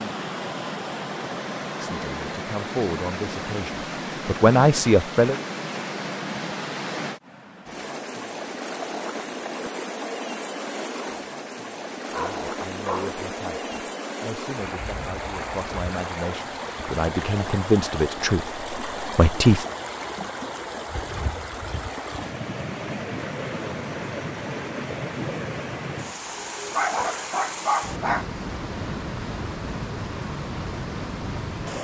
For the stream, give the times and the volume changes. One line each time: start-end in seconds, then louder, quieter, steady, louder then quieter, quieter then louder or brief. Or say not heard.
0.0-31.7 steady.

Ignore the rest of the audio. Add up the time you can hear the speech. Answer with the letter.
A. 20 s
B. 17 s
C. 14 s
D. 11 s
D.